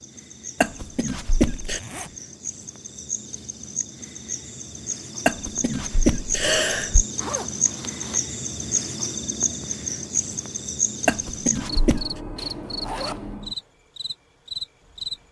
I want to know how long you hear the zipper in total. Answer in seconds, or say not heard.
3 s.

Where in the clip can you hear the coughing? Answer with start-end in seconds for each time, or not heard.
0.6-1.8, 5.2-7.0, 11.1-12.2.